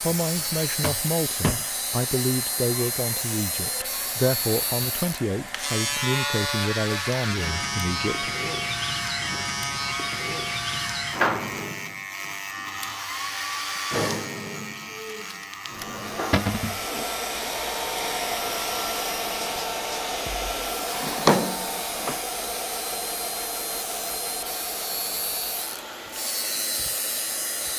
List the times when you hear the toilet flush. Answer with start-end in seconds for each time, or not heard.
not heard.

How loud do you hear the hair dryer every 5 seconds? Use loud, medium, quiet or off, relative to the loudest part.
medium, medium, loud, loud, loud, medium.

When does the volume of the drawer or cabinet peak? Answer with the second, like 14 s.
21 s.